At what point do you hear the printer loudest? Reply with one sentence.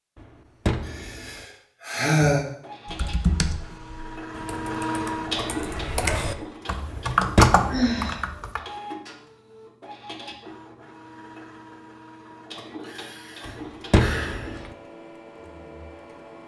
The volume of the printer peaks at 5 seconds.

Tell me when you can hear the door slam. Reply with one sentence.
You can hear the door slam from 0.1 to 1.4 s, from 6.9 to 8.2 s and from 13.4 to 14.7 s.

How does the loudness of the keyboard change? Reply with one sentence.
The volume of the keyboard goes down, then up.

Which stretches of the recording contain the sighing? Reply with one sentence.
You can hear the sighing from 0.8 to 2.5 s, from 7.7 to 8.2 s and from 12.3 to 14.6 s.